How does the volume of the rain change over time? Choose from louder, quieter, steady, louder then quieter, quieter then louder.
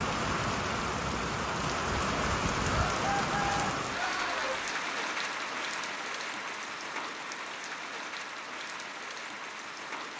quieter.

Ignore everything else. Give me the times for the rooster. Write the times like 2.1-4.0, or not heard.
2.7-4.7.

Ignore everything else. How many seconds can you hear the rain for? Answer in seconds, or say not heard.
10 s.